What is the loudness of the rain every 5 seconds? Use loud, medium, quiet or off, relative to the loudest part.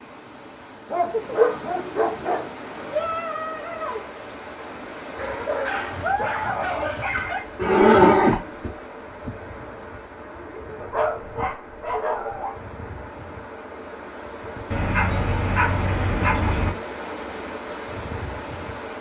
loud, loud, medium, loud.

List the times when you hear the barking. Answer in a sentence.
You can hear the barking from 0.9 to 2.5 s, from 5.2 to 7.5 s, from 10.8 to 12.6 s and from 14.7 to 16.7 s.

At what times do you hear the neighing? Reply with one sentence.
You can hear the neighing from 7.2 to 8.7 s.